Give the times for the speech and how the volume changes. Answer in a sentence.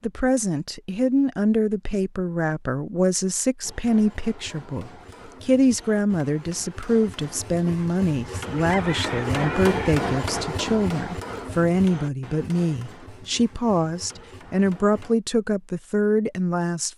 You can hear the speech from 0.0 to 16.9 s, at a steady volume.